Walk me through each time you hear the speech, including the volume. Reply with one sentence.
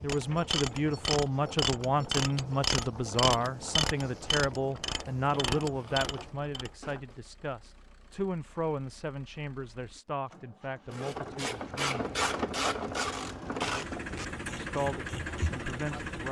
You can hear the speech from 0.0 to 12.2 s, getting quieter; and briefly from 14.4 to 16.2 s.